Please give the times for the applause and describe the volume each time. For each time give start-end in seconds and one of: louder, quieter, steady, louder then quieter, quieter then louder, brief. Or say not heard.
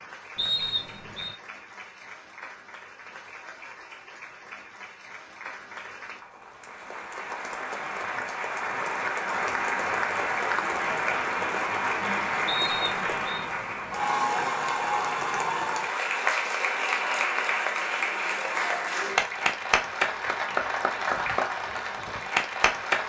0.0-23.0 louder.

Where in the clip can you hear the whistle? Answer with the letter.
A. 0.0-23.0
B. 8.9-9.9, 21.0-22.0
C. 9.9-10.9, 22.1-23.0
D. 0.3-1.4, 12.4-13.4
D.